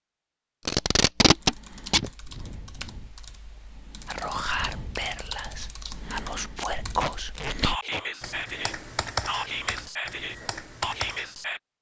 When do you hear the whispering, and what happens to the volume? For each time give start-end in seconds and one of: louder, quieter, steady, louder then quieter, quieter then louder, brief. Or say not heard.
4.0-11.6 steady.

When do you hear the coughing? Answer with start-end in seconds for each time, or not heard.
not heard.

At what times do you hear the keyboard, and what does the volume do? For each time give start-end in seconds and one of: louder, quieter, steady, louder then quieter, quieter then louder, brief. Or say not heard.
1.1-11.3 louder.